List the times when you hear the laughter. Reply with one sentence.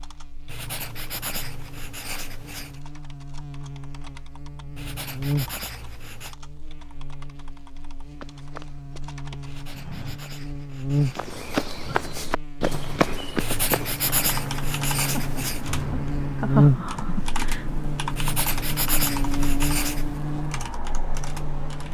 You can hear the laughter from 15.1 to 17.6 s.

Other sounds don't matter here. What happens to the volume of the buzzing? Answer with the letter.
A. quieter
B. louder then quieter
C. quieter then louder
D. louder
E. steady
B.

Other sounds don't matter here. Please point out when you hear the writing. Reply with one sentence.
You can hear the writing from 0.5 to 2.8 s, from 4.8 to 6.3 s, from 9.4 to 11.3 s, from 13.3 to 15.7 s and from 18.1 to 20.1 s.